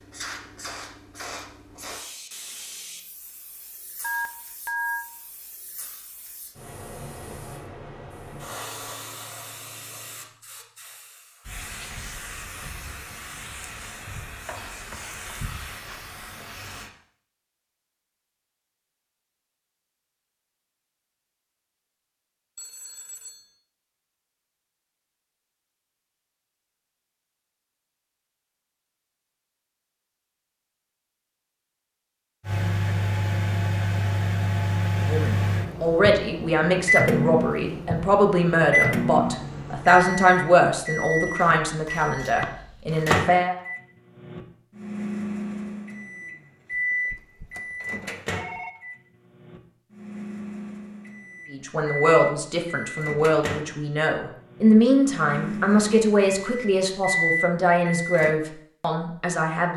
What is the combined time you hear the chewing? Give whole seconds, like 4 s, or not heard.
not heard.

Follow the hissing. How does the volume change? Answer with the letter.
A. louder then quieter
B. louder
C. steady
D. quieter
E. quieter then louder
E.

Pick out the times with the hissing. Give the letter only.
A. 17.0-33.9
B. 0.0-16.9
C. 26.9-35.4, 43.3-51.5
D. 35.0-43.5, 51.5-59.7
B.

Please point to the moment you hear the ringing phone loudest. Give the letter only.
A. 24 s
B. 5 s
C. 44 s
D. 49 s
B.